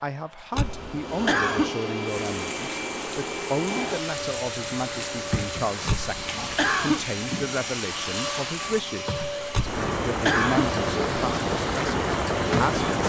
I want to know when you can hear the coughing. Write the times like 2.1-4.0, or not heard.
0.6-1.7, 5.8-7.0, 9.5-10.7.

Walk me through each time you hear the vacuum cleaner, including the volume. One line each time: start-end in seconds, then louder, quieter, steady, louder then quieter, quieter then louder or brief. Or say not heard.
0.0-13.0 steady.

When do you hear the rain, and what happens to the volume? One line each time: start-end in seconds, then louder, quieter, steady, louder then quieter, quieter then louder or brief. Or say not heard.
2.0-13.0 louder.